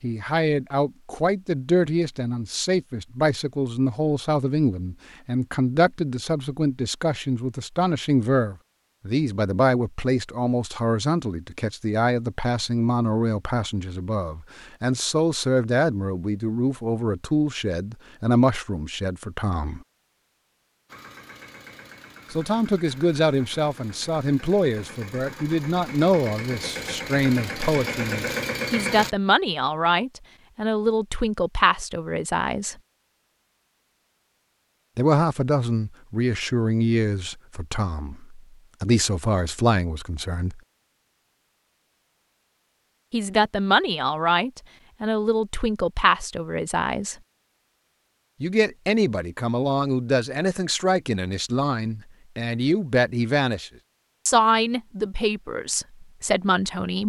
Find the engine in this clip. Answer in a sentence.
You can hear the engine from 20.9 to 29.1 s.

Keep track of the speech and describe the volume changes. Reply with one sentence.
The loudness of the speech stays about the same.